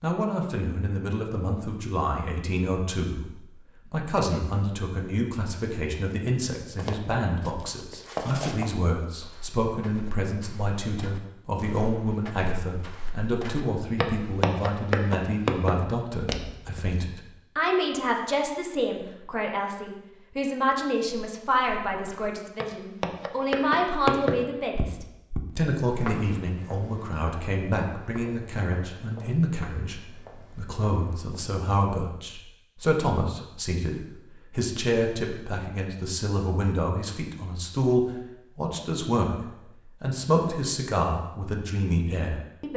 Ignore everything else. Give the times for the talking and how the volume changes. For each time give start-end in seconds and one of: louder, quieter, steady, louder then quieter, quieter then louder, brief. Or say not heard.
0.0-42.7 steady.